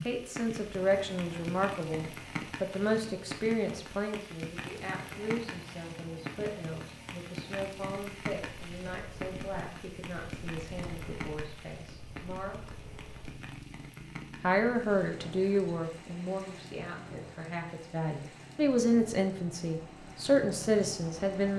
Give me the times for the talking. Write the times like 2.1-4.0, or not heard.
0.0-12.6, 14.4-21.5.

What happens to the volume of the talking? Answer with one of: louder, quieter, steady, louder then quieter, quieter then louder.
quieter then louder.